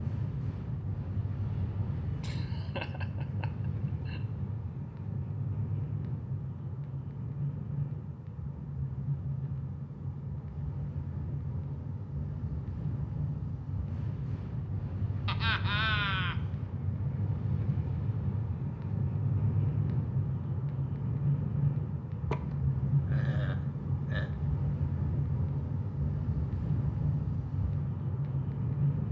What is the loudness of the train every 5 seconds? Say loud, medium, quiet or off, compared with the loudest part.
medium, medium, medium, loud, loud, loud.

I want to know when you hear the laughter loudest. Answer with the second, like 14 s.
16 s.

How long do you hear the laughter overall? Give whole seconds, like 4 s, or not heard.
5 s.